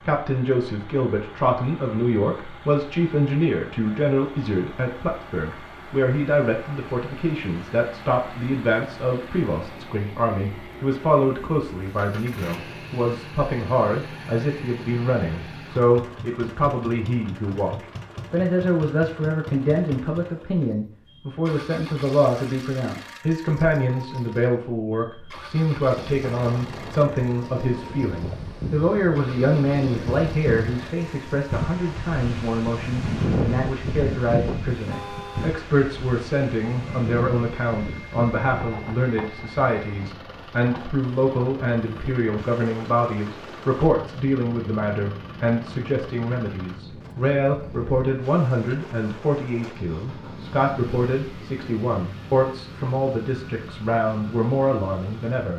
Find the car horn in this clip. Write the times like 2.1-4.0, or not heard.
34.9-35.5.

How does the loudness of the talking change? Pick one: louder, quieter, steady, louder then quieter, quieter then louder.
steady.